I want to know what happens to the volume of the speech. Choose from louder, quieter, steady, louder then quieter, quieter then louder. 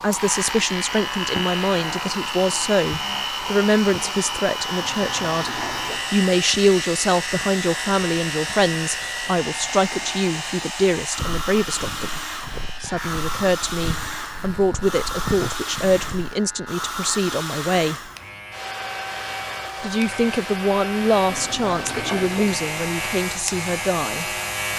steady.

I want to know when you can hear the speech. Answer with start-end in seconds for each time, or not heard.
0.0-12.2, 12.8-17.9, 19.8-24.2.